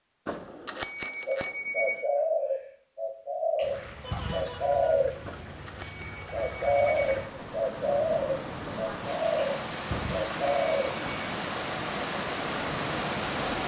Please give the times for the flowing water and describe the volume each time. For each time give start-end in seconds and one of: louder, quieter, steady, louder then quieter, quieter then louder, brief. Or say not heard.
3.6-13.6 louder.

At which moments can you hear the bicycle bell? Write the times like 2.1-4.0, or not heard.
0.2-2.0, 5.2-7.1, 9.9-11.3.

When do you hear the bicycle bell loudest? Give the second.
1 s.